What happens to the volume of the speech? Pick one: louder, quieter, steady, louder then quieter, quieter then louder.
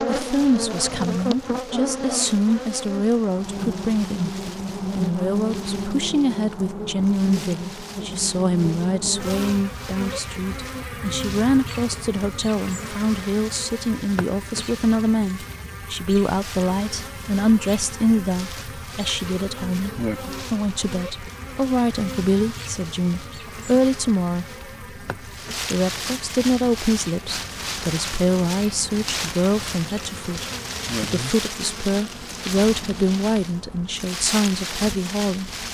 steady.